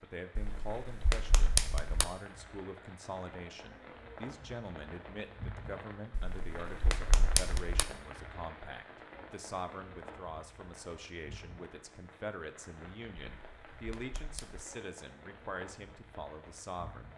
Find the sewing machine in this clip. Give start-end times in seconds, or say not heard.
not heard.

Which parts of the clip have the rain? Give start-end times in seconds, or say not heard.
0.0-17.1.